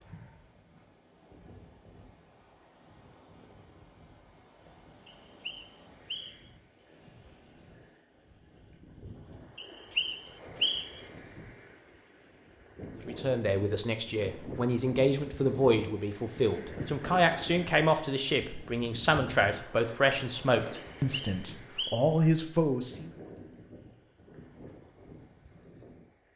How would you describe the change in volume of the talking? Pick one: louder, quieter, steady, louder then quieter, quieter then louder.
steady.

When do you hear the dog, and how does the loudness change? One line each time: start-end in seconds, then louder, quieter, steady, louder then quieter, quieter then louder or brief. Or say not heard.
not heard.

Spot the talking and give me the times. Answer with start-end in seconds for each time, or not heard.
12.9-23.1.